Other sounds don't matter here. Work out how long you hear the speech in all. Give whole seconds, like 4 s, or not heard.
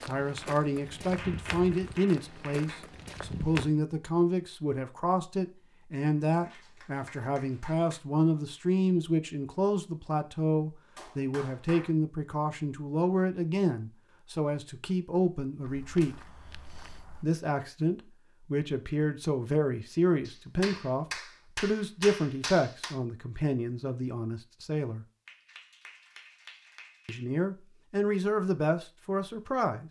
27 s.